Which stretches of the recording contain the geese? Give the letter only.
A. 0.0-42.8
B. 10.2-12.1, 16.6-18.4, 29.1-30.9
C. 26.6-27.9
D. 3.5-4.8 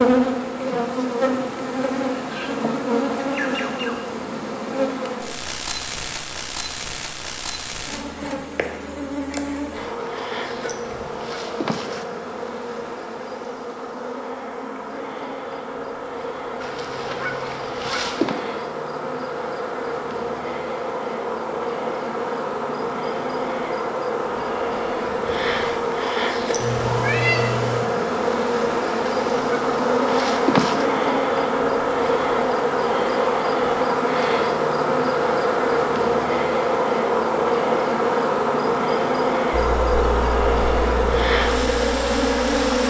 B.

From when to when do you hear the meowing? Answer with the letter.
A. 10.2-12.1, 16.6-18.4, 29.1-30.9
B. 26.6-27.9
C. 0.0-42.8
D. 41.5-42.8
B.